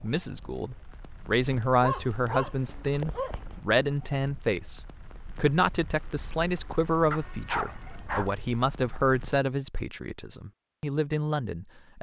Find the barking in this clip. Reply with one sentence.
The barking can be heard from 1.8 to 3.6 s and from 7.1 to 8.3 s.